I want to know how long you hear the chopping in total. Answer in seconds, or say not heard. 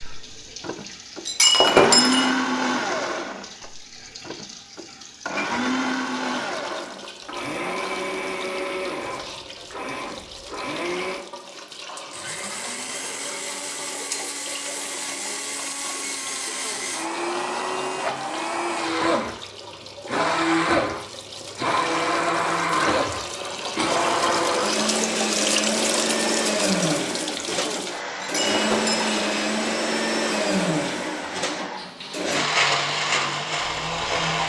not heard.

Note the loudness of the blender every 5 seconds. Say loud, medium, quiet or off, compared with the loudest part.
loud, medium, medium, medium, loud, loud, loud.